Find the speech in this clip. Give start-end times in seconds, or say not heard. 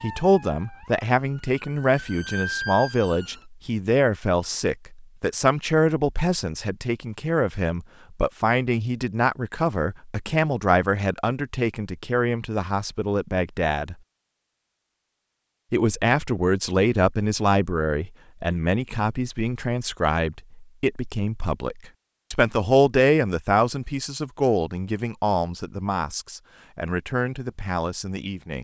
0.0-13.9, 15.7-28.5.